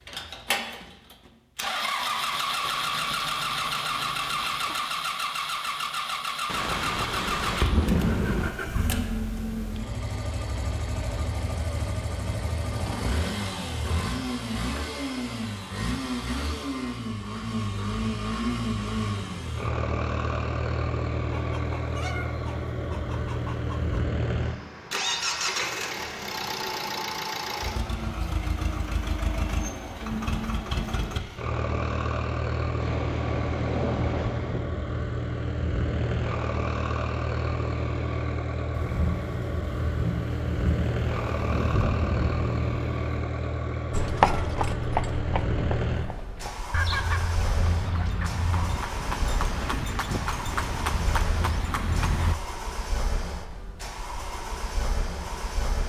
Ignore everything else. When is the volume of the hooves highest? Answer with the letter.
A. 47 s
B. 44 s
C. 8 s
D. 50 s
B.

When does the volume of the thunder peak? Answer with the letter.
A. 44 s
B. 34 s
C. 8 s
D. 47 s
C.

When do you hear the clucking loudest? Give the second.
47 s.